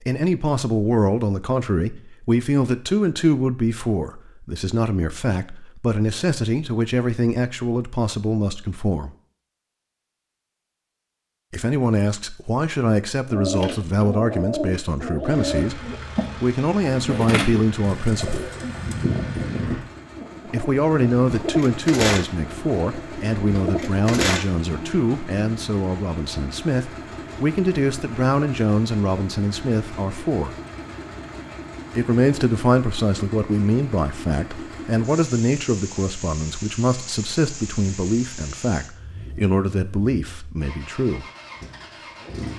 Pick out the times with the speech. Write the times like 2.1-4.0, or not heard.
0.0-9.1, 11.5-18.5, 20.4-30.6, 31.9-41.2.